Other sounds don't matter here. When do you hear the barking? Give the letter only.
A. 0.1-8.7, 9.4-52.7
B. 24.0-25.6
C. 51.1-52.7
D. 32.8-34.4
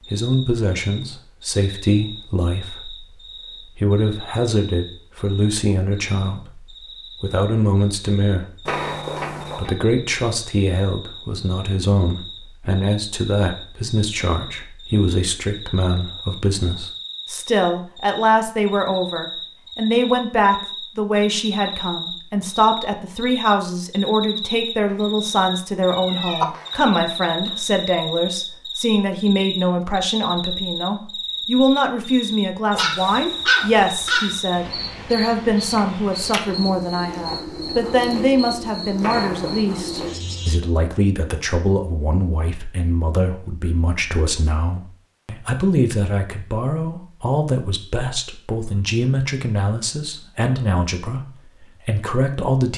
D.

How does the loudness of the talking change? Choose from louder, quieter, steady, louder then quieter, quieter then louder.
steady.